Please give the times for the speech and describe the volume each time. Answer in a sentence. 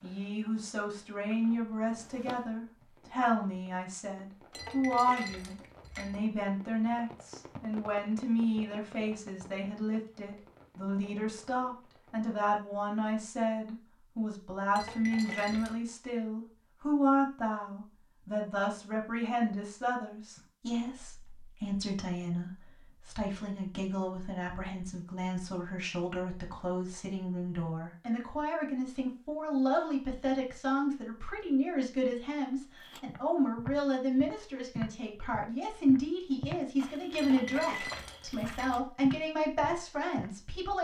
You can hear the speech from 0.0 to 40.7 s, at a steady volume.